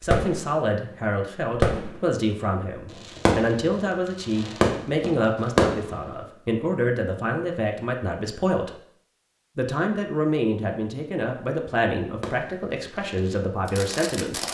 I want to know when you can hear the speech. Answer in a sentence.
You can hear the speech from 0.0 to 8.7 s and from 9.6 to 14.4 s.